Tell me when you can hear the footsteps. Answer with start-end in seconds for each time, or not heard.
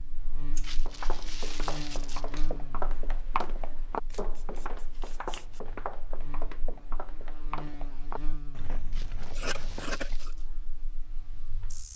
0.8-9.9.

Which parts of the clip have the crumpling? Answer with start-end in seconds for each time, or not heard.
0.6-2.5, 8.9-10.5.